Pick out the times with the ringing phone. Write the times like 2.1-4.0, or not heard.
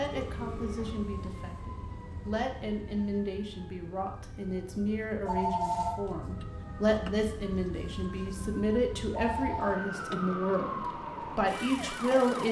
0.3-1.0, 5.2-6.0, 9.1-9.8.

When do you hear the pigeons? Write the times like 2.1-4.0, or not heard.
not heard.